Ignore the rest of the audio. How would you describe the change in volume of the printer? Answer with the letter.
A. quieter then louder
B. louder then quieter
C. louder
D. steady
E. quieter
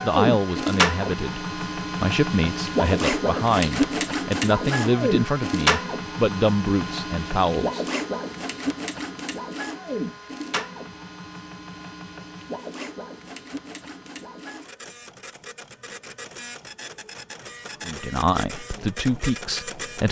E.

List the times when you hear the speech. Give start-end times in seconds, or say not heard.
0.0-7.8, 17.9-20.0.